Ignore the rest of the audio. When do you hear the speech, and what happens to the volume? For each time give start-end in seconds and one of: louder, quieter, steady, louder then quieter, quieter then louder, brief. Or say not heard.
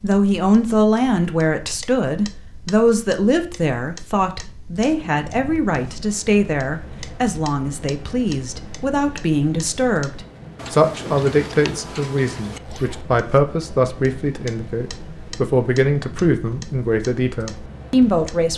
0.0-18.5 steady.